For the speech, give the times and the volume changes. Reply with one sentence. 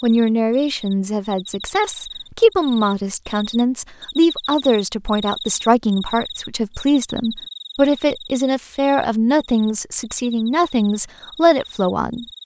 The speech can be heard from 0.0 to 12.4 s, at a steady volume.